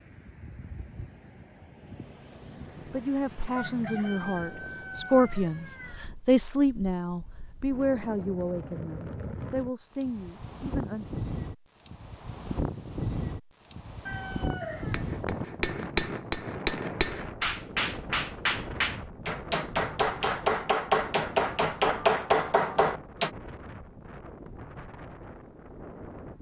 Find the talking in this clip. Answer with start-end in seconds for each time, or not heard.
2.9-11.2.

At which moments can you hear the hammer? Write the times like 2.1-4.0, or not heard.
14.9-23.3.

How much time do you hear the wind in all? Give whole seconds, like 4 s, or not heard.
26 s.